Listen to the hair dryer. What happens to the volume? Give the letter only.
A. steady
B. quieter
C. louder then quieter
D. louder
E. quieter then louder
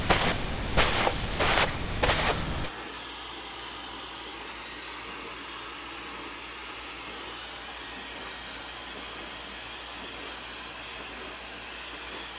A.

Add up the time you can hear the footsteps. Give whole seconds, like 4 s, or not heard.
3 s.